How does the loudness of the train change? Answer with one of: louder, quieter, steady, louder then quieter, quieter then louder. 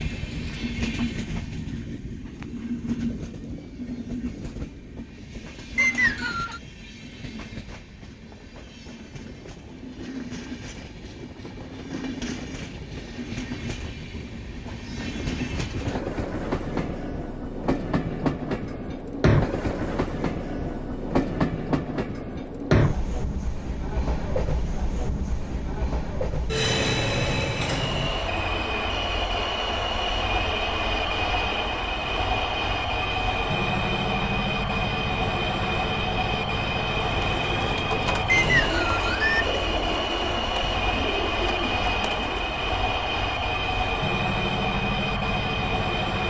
louder.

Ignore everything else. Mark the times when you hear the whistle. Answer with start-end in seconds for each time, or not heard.
5.8-6.6, 38.2-39.5.